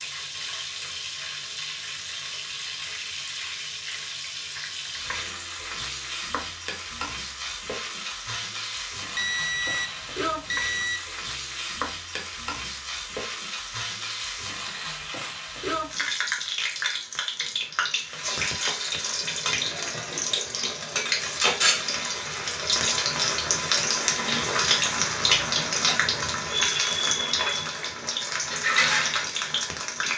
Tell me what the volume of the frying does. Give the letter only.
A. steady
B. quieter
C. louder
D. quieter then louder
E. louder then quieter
C.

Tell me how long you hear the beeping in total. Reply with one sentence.
The beeping can be heard for 2 seconds in total.